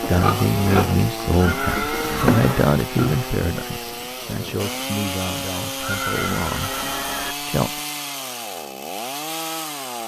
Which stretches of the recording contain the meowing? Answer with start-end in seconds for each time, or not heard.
1.4-2.8, 5.8-7.3.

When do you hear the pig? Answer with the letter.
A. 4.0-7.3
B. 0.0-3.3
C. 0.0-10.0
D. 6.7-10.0
B.